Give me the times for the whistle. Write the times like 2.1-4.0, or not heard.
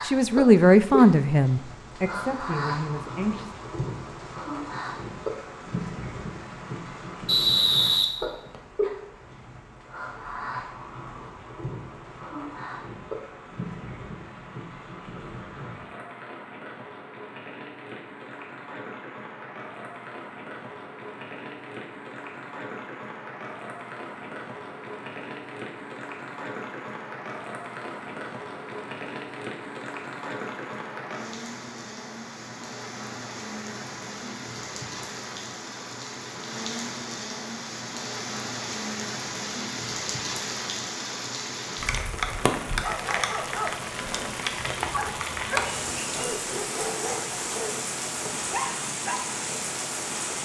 7.2-8.6.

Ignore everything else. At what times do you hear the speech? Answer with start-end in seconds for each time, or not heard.
0.0-3.5.